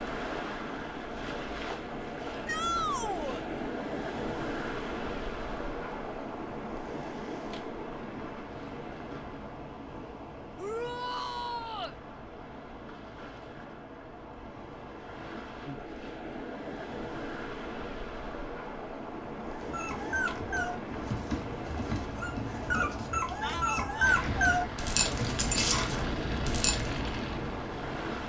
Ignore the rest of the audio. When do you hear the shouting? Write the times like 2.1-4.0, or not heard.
2.5-3.5, 10.6-11.9, 23.4-24.2.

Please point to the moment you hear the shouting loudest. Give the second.
3 s.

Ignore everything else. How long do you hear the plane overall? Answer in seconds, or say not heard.
4 s.